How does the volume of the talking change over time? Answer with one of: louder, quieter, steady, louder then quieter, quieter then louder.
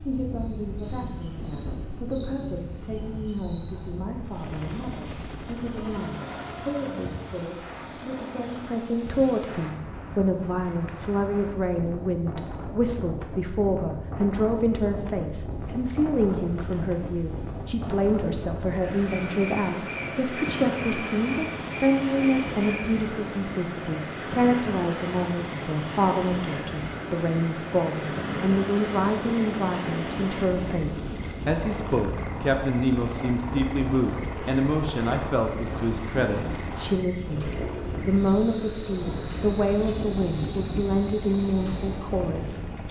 louder.